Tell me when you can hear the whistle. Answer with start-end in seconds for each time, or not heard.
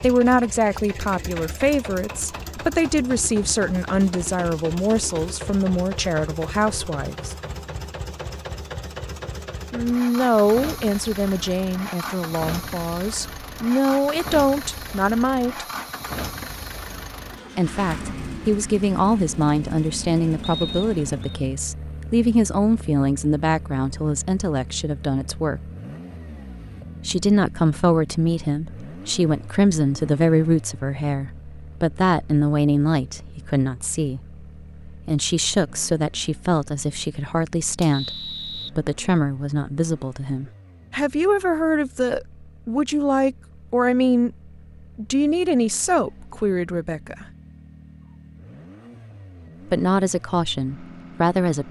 20.4-21.4, 37.9-38.7.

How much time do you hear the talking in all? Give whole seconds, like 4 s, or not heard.
43 s.